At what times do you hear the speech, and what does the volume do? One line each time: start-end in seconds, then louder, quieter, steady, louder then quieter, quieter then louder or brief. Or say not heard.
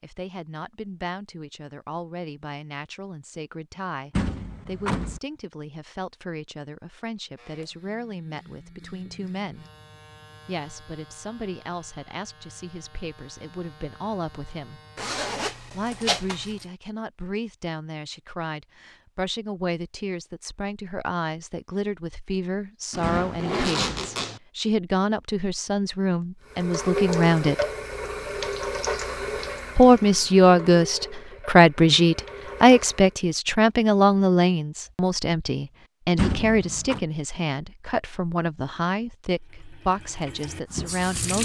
0.0-9.7 steady
10.4-14.8 quieter then louder
15.7-27.6 louder
29.8-41.3 quieter.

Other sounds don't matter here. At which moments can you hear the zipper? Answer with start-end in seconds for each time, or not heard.
14.9-16.6, 22.9-24.4.